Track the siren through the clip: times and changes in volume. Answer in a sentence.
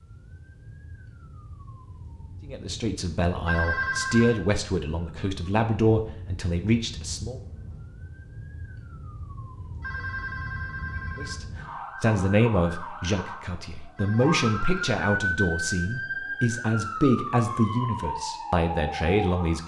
The siren can be heard from 0.0 to 19.6 s, getting louder.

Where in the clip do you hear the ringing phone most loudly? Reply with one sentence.
The volume of the ringing phone peaks at 4 seconds.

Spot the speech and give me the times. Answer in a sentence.
You can hear the speech from 2.5 to 7.4 s and from 11.2 to 19.6 s.